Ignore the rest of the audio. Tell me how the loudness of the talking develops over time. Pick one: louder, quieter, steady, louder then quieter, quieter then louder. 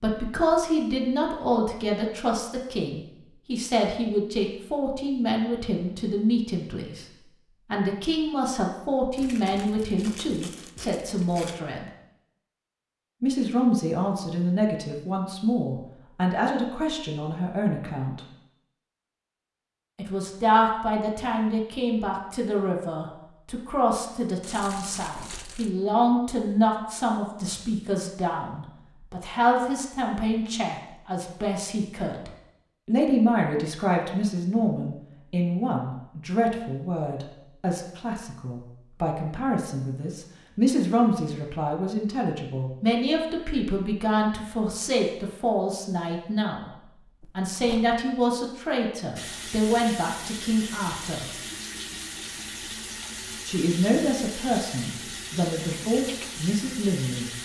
steady.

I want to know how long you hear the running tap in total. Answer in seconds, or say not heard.
8 s.